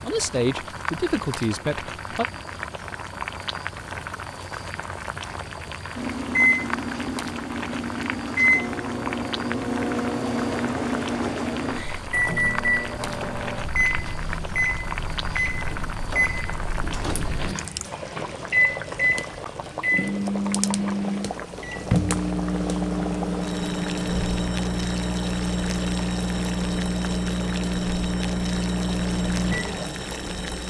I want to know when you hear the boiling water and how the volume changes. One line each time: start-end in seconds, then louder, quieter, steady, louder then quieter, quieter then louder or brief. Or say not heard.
0.0-30.6 steady.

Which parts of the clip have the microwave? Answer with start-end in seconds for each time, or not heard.
6.0-30.6.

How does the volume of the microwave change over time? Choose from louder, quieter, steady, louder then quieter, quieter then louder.
steady.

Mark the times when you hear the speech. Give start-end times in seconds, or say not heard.
0.0-2.2.